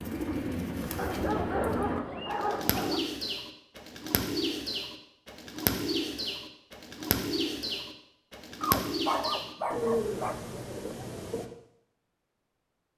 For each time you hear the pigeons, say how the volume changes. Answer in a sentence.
The pigeons can be heard from 0.0 to 11.4 s, at a steady volume.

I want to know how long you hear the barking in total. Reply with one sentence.
The barking can be heard for 4 seconds in total.